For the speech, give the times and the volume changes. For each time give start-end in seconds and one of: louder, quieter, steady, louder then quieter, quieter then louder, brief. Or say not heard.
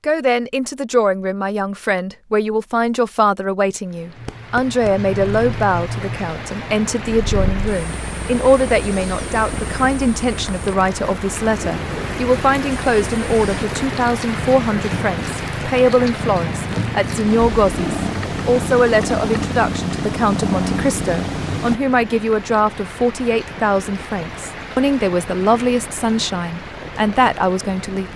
0.1-28.1 steady.